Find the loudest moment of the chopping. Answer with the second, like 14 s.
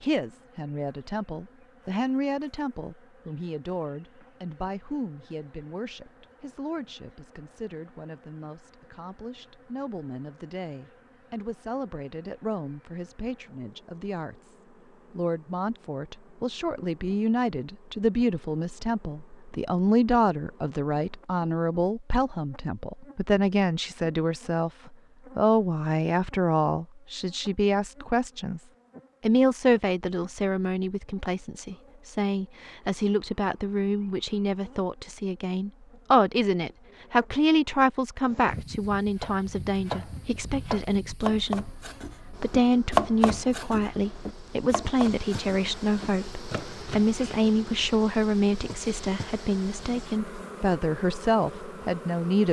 43 s.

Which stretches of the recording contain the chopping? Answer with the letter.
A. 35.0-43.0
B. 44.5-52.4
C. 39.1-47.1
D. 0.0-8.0
C.